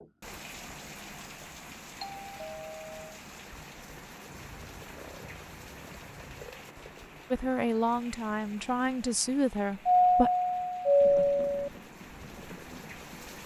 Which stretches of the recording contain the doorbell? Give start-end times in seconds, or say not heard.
2.0-3.1, 9.8-11.7.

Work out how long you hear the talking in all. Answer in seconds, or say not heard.
3 s.